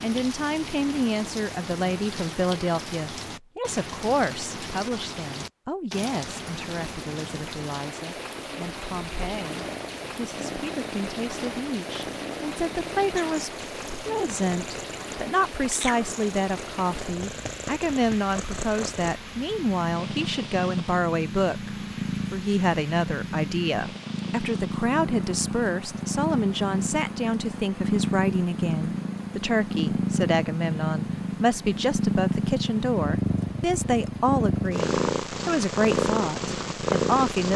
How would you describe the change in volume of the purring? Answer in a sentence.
The volume of the purring goes up.